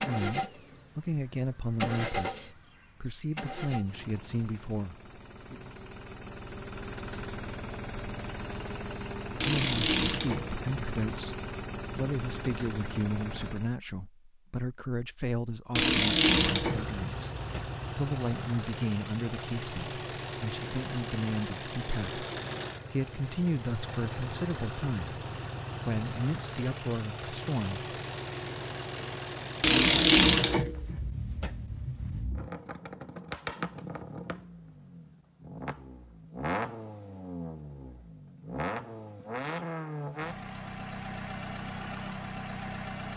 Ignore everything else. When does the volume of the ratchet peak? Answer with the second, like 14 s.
30 s.